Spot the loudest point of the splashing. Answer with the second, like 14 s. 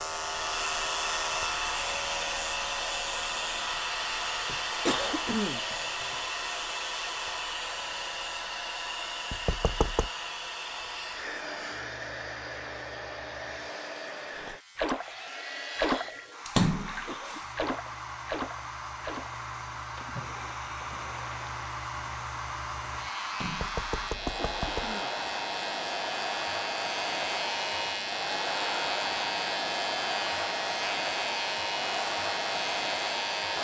17 s.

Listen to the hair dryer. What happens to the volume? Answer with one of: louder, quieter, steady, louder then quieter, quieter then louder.
quieter then louder.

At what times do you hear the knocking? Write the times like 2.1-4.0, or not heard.
9.3-10.1, 23.4-24.9.